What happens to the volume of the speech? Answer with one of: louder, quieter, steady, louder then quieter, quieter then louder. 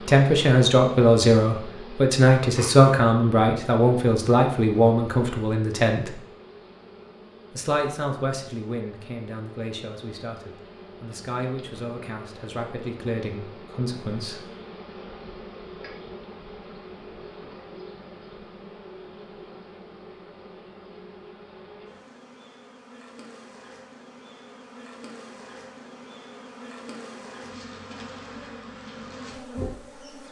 quieter.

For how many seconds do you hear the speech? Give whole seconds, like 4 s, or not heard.
13 s.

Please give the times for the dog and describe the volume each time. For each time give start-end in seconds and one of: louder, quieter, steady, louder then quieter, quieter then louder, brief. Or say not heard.
not heard.